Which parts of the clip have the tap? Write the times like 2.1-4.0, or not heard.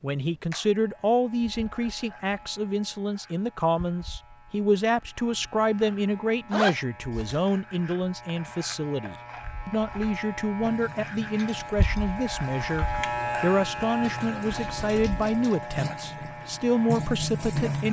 10.6-17.8.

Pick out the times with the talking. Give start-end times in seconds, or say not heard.
0.0-17.8.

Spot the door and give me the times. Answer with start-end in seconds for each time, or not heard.
not heard.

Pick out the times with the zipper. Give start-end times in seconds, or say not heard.
6.5-7.4.